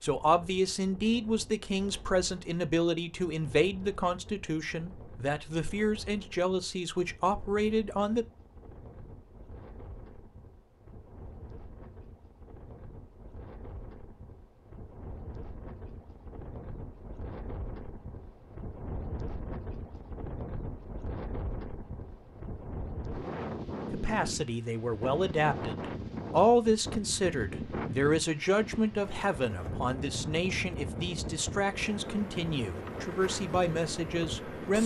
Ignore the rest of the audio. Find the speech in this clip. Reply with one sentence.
The speech can be heard from 0.0 to 8.2 s and from 23.9 to 34.8 s.